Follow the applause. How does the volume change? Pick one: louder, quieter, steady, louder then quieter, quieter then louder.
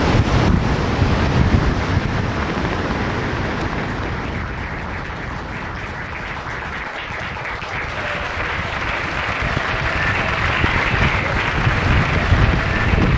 louder.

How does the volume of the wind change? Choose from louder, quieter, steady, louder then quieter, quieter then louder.
quieter then louder.